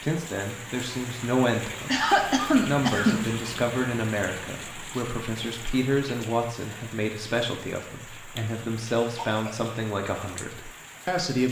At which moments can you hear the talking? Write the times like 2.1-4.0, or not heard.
0.0-11.4.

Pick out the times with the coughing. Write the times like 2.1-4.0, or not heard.
1.9-3.2, 9.2-9.6.